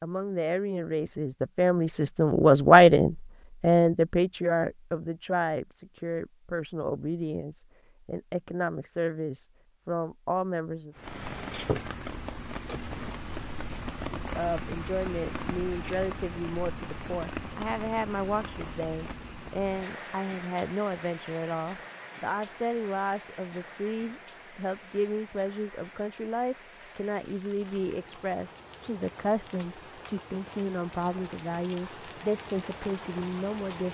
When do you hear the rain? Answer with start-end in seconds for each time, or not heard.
10.9-33.9.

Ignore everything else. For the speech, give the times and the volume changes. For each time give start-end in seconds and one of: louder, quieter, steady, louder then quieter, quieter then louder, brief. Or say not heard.
0.0-10.9 louder then quieter
14.2-33.9 steady.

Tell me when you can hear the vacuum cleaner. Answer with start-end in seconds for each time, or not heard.
not heard.